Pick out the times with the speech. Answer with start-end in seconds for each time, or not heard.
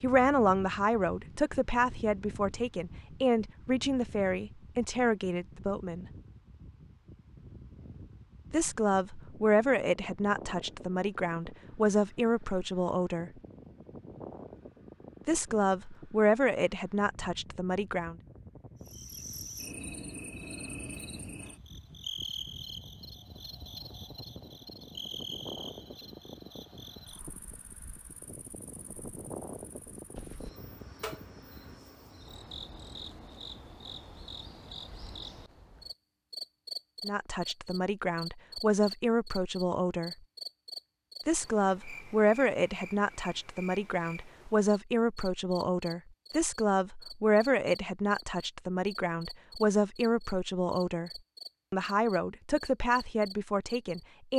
0.0-6.0, 8.5-13.3, 15.2-18.1, 37.0-40.1, 41.2-54.3.